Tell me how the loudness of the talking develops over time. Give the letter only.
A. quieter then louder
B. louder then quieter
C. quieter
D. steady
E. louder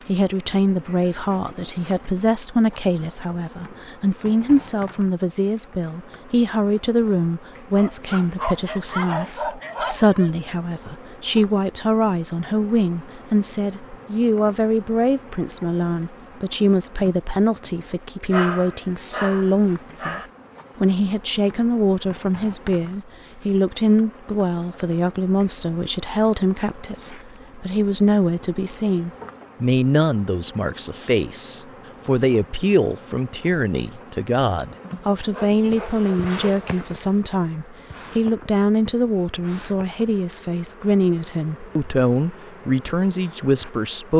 D.